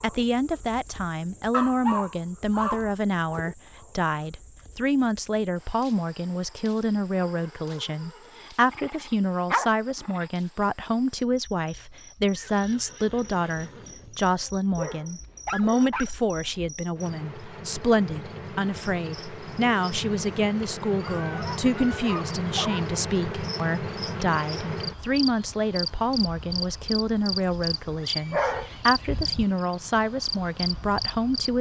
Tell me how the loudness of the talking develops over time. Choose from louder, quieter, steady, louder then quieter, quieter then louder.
steady.